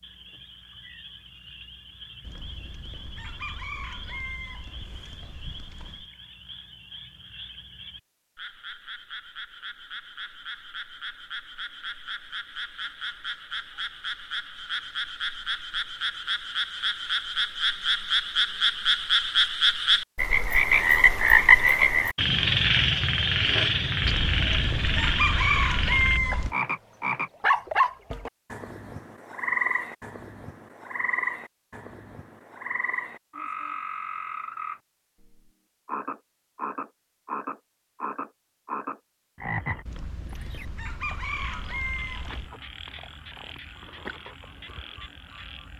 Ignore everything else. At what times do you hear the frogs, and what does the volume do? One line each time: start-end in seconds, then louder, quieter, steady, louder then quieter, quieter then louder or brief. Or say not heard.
0.0-45.7 louder then quieter.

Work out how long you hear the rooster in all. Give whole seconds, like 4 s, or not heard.
9 s.